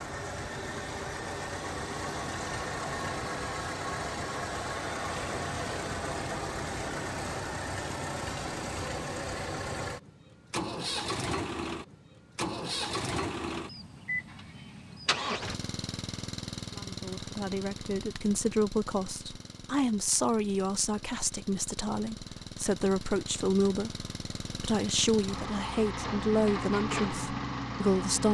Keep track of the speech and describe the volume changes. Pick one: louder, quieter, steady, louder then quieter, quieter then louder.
steady.